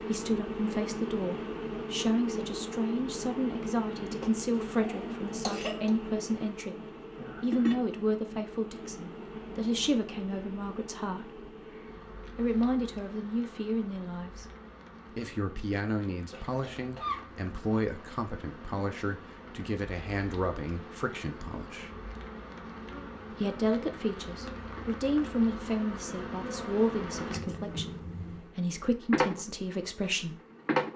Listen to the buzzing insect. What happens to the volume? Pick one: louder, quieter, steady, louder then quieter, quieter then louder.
quieter then louder.